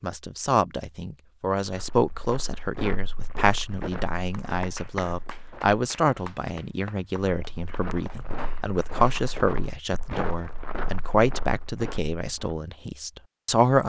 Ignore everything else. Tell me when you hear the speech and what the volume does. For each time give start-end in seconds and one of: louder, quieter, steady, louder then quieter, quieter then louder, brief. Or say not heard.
0.0-13.8 steady.